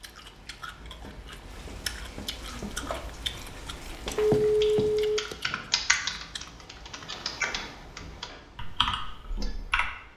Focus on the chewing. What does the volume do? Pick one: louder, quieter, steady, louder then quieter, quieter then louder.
louder then quieter.